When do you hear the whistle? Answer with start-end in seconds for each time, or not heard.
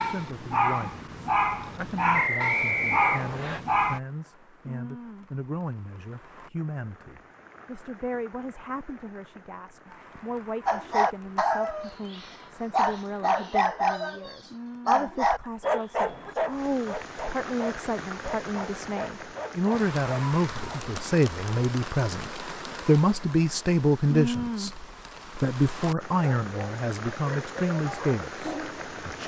2.1-3.6.